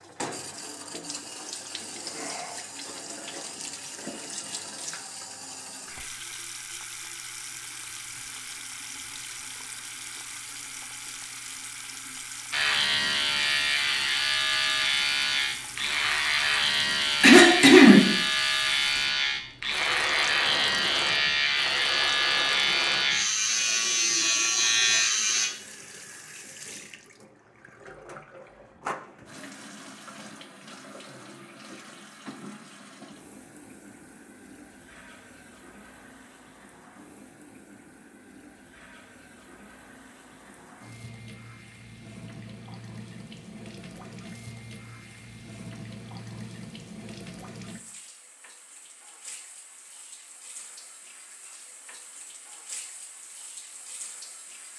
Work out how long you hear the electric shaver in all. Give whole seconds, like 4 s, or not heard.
13 s.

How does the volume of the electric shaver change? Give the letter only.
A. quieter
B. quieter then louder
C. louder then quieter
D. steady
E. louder
D.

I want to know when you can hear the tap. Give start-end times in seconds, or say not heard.
0.0-54.7.